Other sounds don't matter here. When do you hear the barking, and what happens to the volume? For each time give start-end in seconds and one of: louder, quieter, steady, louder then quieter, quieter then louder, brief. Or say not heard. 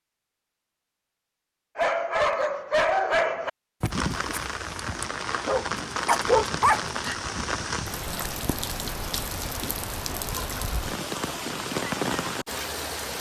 1.8-7.2 quieter then louder.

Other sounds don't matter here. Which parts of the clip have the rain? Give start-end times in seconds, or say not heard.
3.9-13.1.